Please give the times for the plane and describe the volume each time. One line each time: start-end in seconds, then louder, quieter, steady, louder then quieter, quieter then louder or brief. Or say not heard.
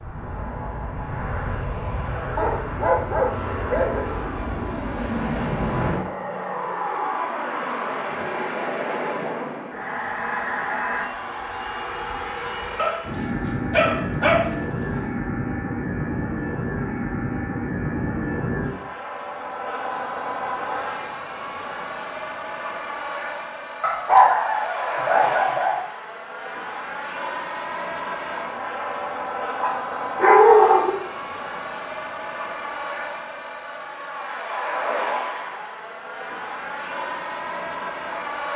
0.0-38.5 steady.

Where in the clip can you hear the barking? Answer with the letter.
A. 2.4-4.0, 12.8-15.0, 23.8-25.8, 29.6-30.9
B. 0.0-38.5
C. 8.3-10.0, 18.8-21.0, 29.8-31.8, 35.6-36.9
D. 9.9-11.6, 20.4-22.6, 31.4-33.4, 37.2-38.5
A.